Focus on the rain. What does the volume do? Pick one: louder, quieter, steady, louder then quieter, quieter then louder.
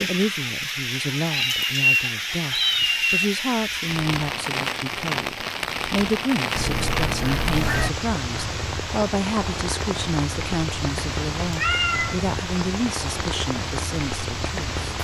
steady.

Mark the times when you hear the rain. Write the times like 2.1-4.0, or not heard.
0.0-14.9.